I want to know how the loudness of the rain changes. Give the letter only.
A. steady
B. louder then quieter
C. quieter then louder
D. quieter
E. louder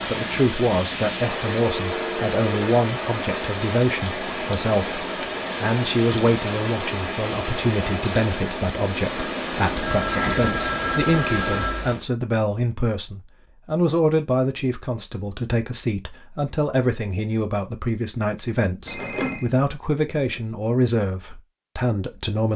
A.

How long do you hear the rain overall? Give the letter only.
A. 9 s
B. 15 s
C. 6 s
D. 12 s
D.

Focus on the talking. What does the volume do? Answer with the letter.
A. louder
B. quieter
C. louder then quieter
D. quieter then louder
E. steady
E.